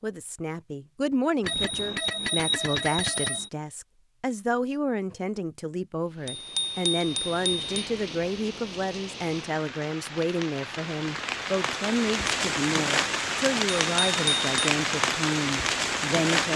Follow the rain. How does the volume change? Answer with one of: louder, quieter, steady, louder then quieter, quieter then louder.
louder.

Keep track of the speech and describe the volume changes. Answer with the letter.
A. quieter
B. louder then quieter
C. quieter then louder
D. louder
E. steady
E.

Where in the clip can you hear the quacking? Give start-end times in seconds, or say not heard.
not heard.